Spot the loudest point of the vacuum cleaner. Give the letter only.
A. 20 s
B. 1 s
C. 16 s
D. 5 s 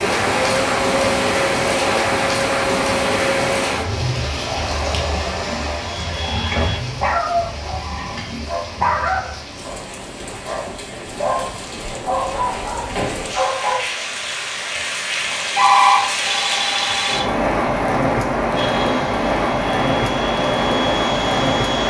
B.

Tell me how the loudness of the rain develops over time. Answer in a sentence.
The volume of the rain goes down, then up.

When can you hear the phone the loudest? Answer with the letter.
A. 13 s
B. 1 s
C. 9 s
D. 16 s
D.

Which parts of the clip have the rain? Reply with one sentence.
The rain can be heard from 0.0 to 21.8 s.